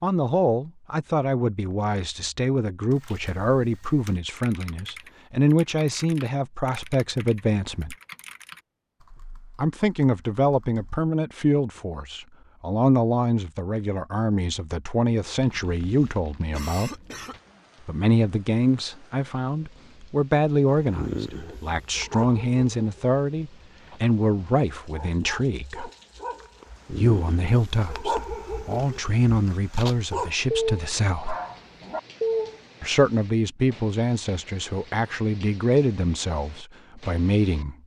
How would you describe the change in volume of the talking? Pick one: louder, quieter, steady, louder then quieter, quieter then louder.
steady.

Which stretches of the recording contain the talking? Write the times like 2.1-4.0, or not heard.
0.0-8.0, 9.6-16.9, 17.9-25.9, 26.9-31.4, 32.8-37.8.